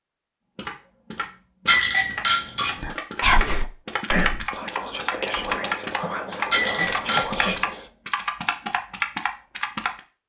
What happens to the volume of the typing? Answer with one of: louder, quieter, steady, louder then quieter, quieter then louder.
louder.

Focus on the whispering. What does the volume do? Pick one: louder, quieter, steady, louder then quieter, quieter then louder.
quieter.